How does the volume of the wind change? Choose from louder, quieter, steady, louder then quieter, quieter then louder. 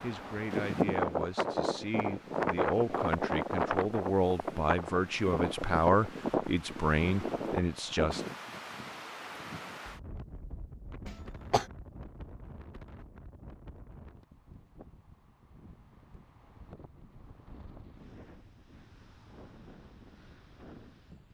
quieter.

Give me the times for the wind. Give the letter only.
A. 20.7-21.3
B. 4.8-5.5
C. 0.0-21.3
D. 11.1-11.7
C.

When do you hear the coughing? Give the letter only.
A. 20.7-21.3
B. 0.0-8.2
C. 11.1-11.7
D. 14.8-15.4
C.